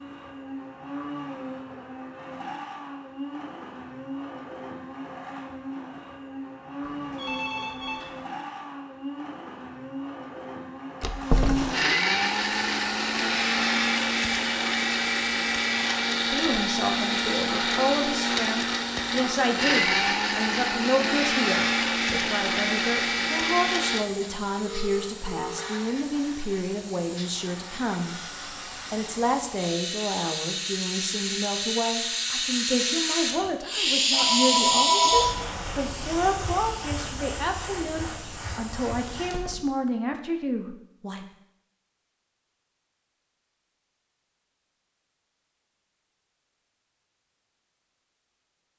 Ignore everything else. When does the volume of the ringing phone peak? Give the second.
35 s.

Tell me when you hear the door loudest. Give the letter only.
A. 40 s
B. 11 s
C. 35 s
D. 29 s
B.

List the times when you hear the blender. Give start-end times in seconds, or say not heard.
0.0-24.1.